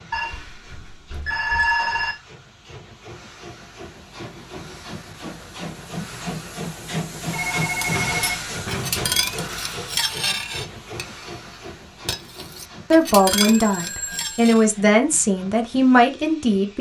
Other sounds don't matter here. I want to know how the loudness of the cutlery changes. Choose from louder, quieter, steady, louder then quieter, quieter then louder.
quieter then louder.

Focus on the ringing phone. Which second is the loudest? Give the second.
2 s.